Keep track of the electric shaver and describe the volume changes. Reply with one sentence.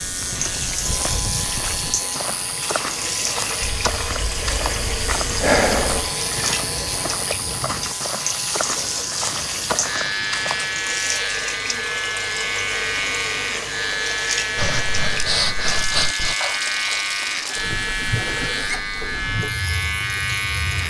The loudness of the electric shaver goes up.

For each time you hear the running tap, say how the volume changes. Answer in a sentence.
The running tap can be heard from 0.0 to 20.8 s, at a steady volume.